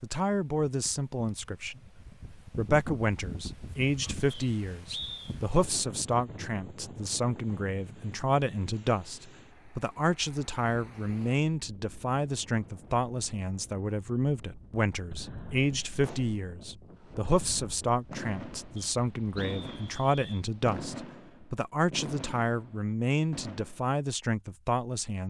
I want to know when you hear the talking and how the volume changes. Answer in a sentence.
The talking can be heard from 0.0 to 25.2 s, at a steady volume.